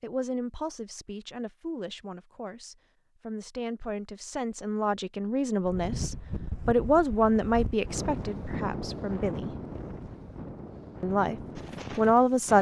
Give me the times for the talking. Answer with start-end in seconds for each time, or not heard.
0.0-9.6, 11.0-12.5.